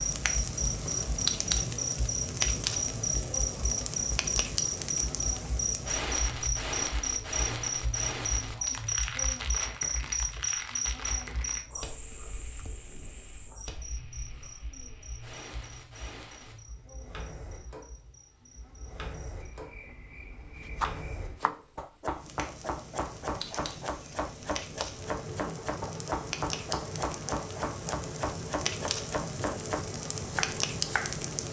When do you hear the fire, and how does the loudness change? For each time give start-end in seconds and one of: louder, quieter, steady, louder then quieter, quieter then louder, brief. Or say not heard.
0.0-31.4 quieter then louder.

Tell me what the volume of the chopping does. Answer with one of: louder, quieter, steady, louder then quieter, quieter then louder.
steady.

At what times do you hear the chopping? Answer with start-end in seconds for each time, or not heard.
20.6-31.2.